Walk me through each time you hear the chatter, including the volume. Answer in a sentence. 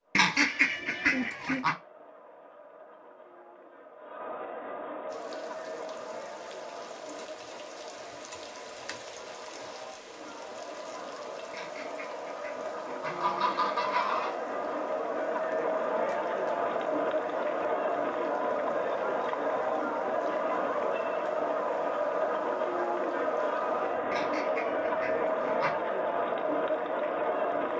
You can hear the chatter from 0.0 to 27.7 s, getting louder.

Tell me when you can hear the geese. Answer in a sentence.
The geese can be heard from 0.1 to 1.8 s, from 11.5 to 14.3 s and from 24.1 to 25.8 s.